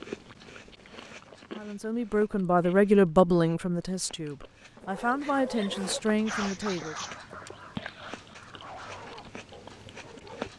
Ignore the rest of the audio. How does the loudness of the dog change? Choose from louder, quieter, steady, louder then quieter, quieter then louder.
quieter.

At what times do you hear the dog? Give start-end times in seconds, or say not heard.
4.8-10.5.